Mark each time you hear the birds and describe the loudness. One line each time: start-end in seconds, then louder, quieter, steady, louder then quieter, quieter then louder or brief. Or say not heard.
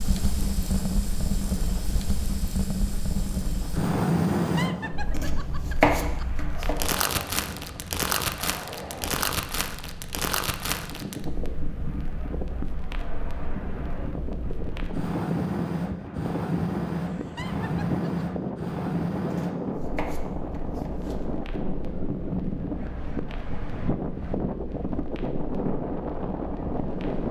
not heard.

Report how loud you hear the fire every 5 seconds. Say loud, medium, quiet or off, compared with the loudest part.
loud, loud, medium, loud, quiet, quiet.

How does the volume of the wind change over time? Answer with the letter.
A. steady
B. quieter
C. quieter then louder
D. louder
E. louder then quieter
D.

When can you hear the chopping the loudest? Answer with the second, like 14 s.
6 s.